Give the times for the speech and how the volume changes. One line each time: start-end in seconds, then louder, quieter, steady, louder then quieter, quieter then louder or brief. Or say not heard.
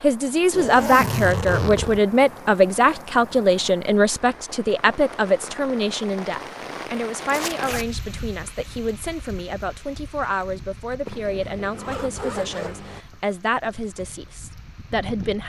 0.0-15.4 quieter.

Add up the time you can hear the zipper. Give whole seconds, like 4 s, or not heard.
4 s.